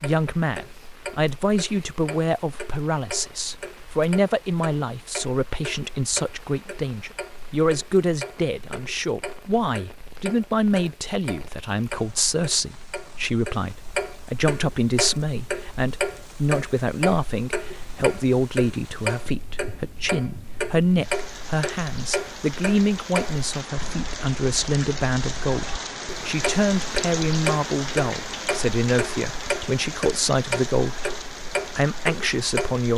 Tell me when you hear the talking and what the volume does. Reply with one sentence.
The talking can be heard from 0.0 to 31.1 s, at a steady volume; and briefly from 31.8 to 32.9 s.